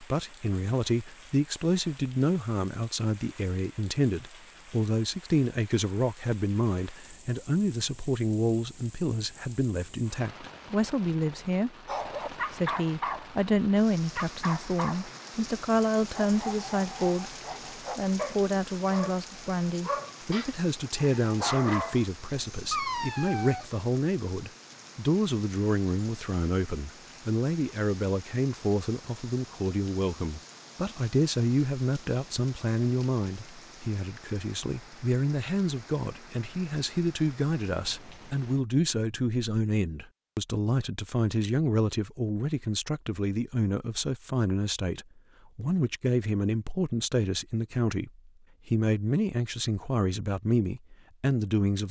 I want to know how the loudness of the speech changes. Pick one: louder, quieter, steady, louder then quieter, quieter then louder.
steady.